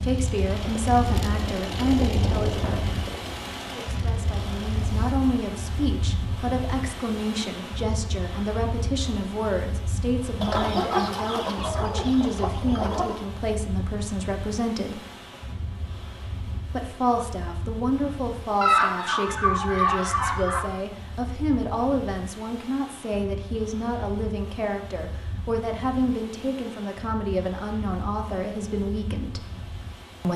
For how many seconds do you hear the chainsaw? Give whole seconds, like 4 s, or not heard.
5 s.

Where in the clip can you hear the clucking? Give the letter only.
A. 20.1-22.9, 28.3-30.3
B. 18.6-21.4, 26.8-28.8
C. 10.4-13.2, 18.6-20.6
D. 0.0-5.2
C.